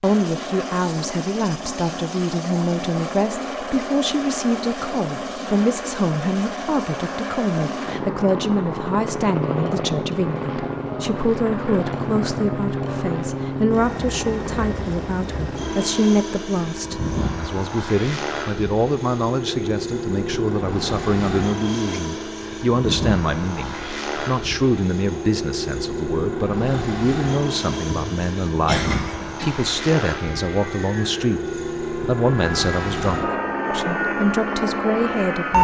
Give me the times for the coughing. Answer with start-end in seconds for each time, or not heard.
27.8-29.6.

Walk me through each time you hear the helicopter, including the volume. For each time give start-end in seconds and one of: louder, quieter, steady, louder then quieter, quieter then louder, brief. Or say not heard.
0.0-35.5 steady.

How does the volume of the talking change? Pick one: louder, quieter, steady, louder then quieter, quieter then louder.
steady.